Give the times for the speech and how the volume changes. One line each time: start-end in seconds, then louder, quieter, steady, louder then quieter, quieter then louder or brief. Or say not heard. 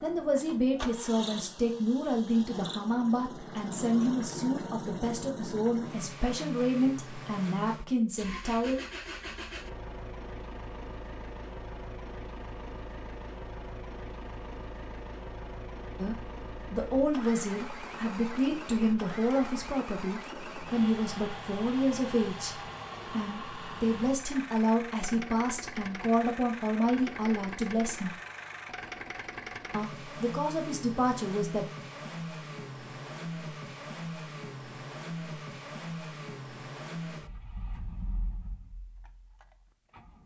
0.0-8.8 steady
15.9-28.1 steady
29.7-31.6 brief.